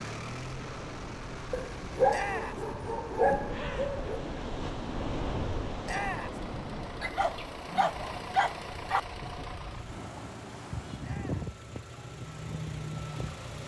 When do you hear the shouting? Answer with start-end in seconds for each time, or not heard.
2.1-2.6, 5.8-6.4, 11.0-11.5.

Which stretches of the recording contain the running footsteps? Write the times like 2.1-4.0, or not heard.
not heard.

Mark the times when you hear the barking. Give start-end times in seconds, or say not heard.
1.5-4.2, 7.0-9.0.